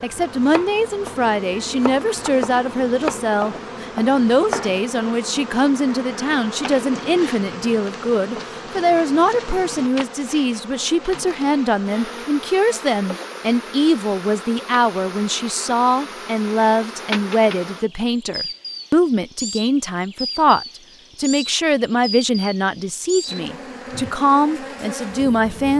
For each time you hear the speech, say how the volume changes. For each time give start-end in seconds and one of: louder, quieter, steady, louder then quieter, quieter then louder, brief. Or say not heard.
0.0-25.7 steady.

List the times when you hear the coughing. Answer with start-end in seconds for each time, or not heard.
not heard.